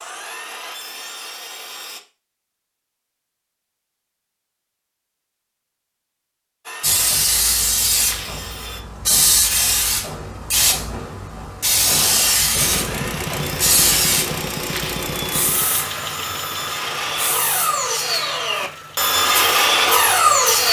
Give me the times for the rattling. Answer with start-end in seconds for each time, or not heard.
8.0-8.4, 14.6-15.1.